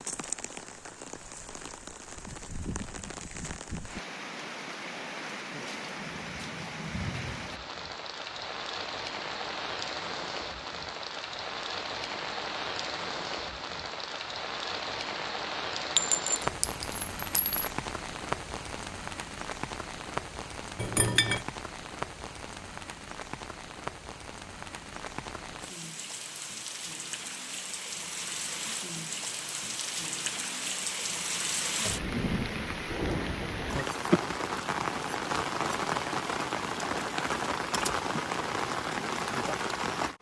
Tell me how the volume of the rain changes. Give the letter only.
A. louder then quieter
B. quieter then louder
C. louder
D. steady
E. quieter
C.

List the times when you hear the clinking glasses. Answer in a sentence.
The clinking glasses can be heard from 15.9 to 17.7 s and from 20.8 to 21.4 s.